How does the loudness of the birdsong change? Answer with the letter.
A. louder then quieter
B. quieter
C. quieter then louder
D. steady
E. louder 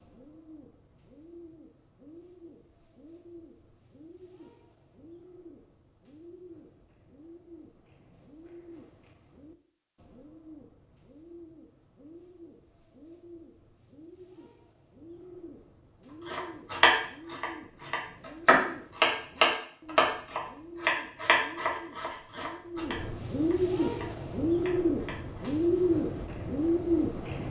E.